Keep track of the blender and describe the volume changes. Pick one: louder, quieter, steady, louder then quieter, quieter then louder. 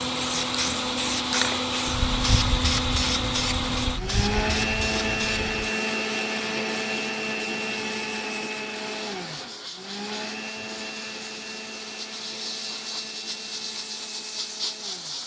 quieter.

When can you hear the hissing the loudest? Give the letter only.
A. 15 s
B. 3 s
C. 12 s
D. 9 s
B.